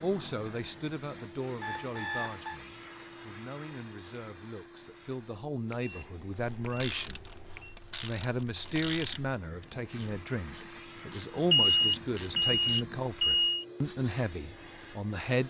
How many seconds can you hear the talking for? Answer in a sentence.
You can hear the talking for 15 seconds altogether.